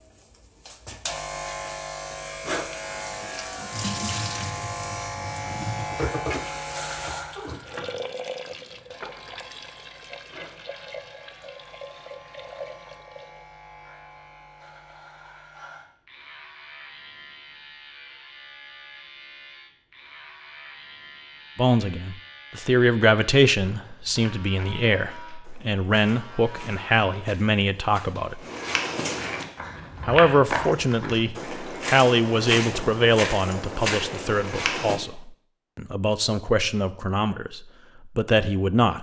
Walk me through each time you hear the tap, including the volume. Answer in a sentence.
You can hear the tap from 2.5 to 13.4 s, getting quieter.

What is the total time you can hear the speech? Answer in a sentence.
You can hear the speech for 16 seconds altogether.